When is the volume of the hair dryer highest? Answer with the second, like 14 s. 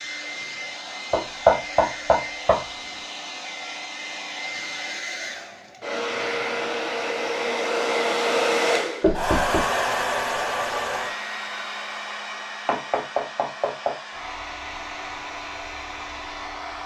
8 s.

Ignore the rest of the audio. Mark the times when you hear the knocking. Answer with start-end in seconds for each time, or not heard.
1.1-2.6, 9.0-9.7, 12.7-13.9.